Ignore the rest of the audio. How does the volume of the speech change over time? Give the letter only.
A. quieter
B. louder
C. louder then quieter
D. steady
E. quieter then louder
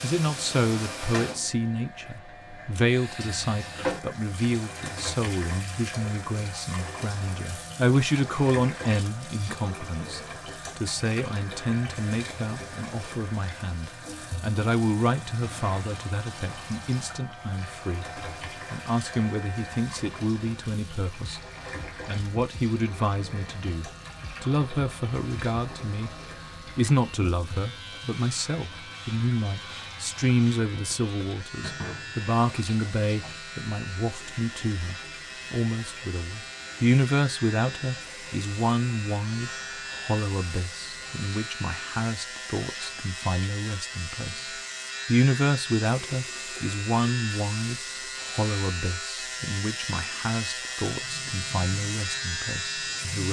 D.